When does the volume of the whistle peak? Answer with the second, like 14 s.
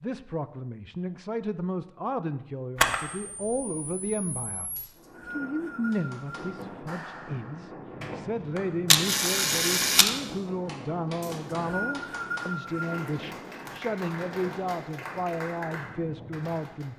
12 s.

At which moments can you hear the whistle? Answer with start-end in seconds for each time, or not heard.
4.8-6.5, 11.2-13.1.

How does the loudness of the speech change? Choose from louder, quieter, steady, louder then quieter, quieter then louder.
steady.